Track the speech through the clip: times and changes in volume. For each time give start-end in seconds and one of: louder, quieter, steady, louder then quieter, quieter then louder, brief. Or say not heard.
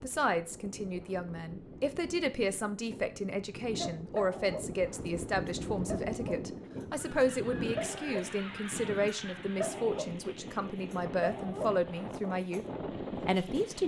0.0-13.8 steady.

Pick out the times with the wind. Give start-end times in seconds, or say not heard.
0.0-13.8.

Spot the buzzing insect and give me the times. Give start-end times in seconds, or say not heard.
not heard.